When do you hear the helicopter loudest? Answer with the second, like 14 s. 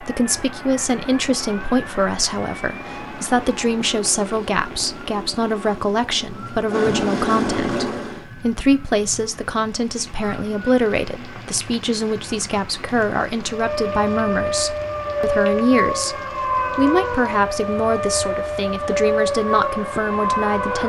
7 s.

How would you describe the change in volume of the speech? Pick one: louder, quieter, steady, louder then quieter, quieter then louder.
steady.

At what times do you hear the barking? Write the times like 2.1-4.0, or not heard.
not heard.